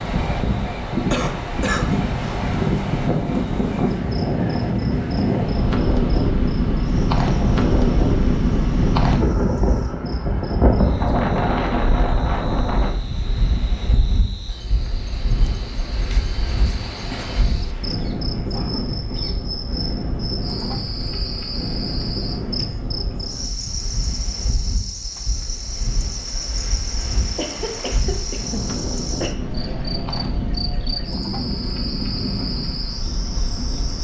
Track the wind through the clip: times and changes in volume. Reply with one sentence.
The wind can be heard from 0.0 to 33.9 s, getting quieter.